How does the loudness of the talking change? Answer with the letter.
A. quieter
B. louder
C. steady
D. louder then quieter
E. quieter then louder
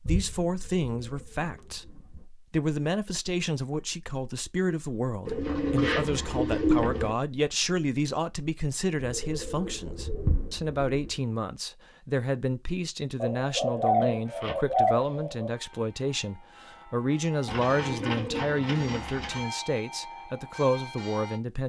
C.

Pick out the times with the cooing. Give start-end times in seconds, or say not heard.
0.1-2.2, 5.2-7.1, 9.0-11.2, 13.2-15.5, 17.4-19.4.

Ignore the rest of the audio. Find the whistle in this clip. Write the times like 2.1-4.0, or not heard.
not heard.